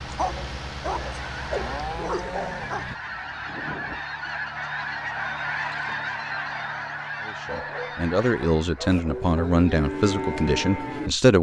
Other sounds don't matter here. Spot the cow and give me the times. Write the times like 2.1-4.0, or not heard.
0.0-3.0, 8.9-11.1.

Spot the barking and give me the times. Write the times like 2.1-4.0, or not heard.
0.1-2.9, 7.5-9.3.